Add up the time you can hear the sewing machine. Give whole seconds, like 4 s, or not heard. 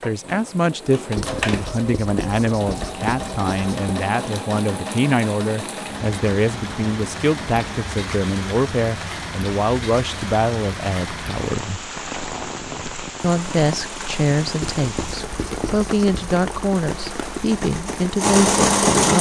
14 s.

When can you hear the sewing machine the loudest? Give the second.
19 s.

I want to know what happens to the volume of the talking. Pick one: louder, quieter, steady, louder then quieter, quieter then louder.
steady.